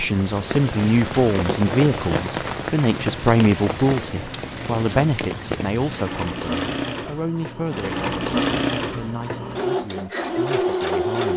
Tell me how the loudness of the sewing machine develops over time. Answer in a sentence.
The loudness of the sewing machine goes up.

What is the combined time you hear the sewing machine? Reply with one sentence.
You can hear the sewing machine for 11 seconds altogether.